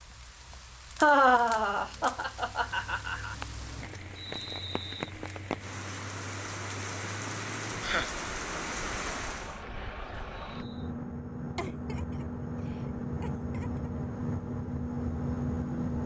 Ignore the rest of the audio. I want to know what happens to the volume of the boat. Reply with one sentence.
The volume of the boat goes up.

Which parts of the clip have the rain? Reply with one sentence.
The rain can be heard from 0.0 to 9.6 s.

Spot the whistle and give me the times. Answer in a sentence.
The whistle can be heard from 4.2 to 5.1 s and from 10.4 to 10.9 s.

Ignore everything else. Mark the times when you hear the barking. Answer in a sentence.
The barking can't be heard in this clip.